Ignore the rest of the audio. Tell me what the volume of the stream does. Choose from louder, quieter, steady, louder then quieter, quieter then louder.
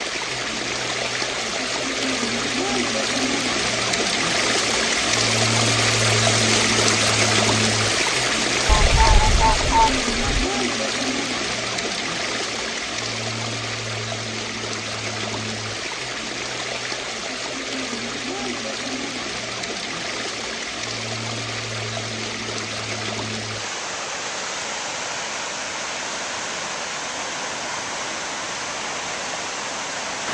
quieter.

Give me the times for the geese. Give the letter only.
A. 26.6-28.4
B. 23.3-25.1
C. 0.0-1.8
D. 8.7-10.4
D.